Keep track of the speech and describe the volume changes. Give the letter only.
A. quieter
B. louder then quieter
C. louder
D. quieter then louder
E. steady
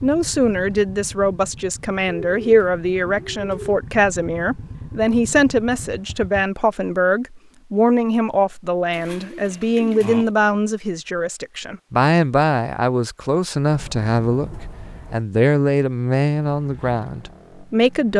E.